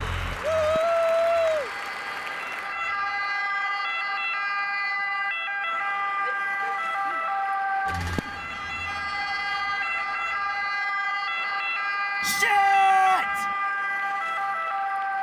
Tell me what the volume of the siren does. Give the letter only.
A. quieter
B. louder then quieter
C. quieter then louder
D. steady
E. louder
E.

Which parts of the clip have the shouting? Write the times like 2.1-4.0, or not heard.
0.4-1.7, 6.2-7.3, 12.2-13.4.